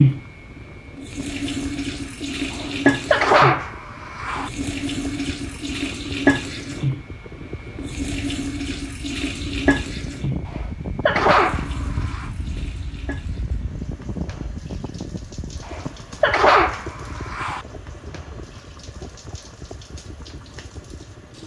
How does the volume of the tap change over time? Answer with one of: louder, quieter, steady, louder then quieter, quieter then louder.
quieter.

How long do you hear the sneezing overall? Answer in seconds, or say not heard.
6 s.